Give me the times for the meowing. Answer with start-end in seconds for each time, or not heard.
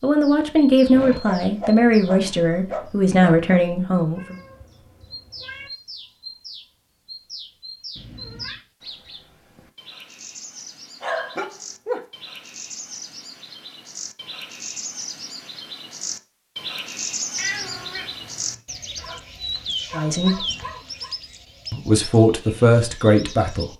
4.2-5.7, 8.0-8.7, 17.4-18.6.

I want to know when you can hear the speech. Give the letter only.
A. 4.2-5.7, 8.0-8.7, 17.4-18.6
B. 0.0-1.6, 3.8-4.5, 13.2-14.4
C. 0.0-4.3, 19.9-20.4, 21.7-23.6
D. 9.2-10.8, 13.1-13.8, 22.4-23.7
C.